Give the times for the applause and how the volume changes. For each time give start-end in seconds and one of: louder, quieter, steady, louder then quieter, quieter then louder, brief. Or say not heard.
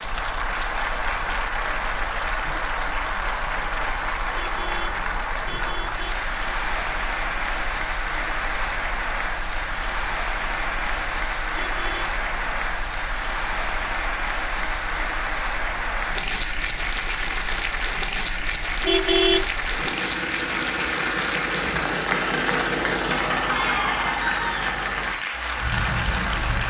0.0-26.6 steady.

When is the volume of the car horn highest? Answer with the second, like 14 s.
19 s.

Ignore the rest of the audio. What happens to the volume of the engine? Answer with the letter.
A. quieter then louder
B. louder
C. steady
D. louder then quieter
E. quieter
B.